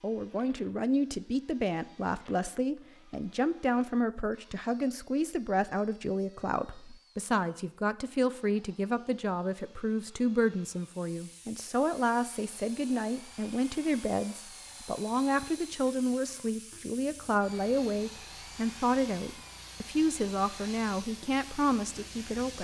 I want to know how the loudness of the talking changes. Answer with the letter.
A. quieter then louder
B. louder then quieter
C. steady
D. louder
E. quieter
C.